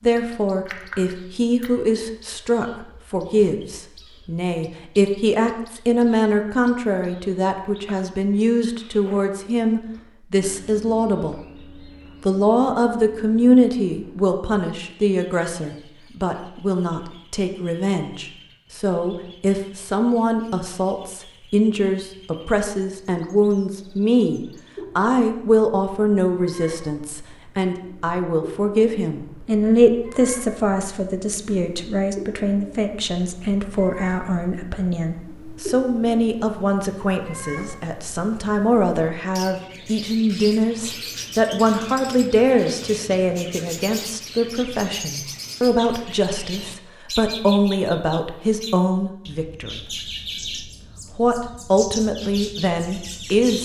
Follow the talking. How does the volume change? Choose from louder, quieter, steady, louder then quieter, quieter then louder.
steady.